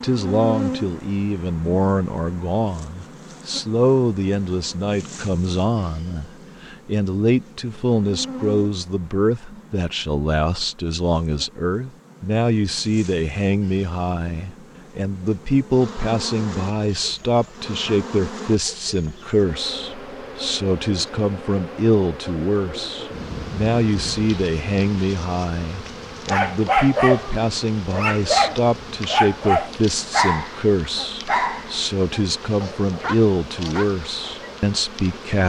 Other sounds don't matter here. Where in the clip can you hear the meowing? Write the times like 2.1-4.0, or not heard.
not heard.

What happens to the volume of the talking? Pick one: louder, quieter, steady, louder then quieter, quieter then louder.
steady.